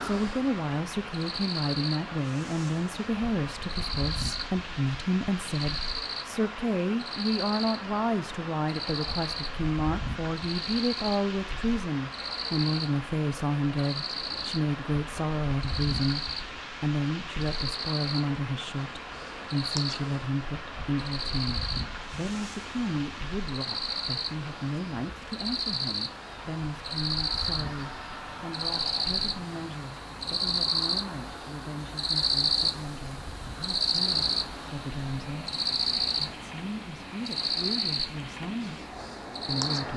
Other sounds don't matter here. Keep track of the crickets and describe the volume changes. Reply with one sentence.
The volume of the crickets goes up.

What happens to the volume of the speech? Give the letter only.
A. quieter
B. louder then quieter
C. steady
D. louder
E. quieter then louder
A.